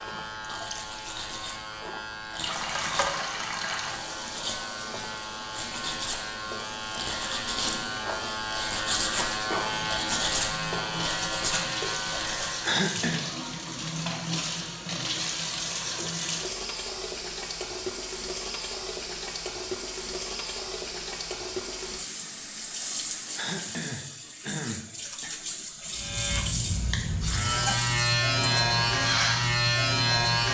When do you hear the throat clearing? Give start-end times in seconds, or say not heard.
12.6-13.2, 23.4-25.4.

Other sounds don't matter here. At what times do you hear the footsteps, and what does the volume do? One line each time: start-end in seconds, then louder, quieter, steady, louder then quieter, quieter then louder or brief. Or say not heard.
not heard.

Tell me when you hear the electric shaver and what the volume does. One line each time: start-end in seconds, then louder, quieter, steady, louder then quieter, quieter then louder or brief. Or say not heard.
0.0-12.8 louder
25.9-30.4 louder.